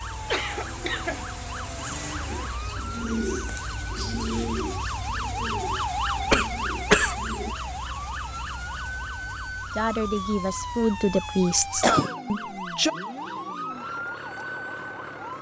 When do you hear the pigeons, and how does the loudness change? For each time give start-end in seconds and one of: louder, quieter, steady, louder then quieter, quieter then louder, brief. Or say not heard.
2.2-7.5 quieter.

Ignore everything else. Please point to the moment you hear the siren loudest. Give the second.
6 s.